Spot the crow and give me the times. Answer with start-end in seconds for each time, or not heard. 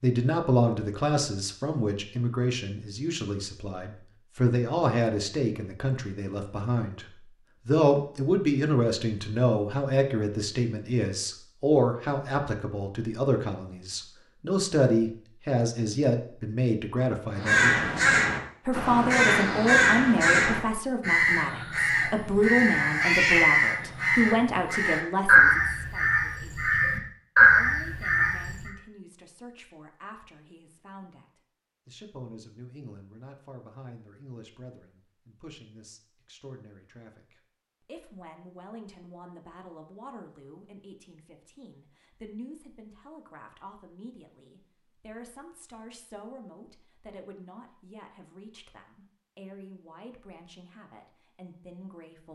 17.4-28.7.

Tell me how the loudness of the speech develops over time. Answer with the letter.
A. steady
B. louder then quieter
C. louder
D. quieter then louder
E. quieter
E.